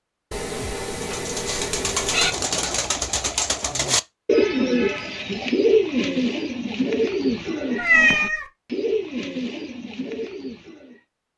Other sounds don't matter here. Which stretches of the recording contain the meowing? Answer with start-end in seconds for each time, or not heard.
0.3-2.3, 7.8-8.4.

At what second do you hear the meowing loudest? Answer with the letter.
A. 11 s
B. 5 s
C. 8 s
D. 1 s
C.